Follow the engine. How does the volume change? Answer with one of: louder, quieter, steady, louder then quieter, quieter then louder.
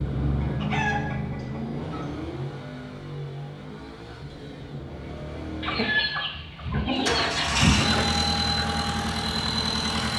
quieter then louder.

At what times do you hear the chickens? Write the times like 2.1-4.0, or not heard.
0.4-2.1, 5.6-8.1.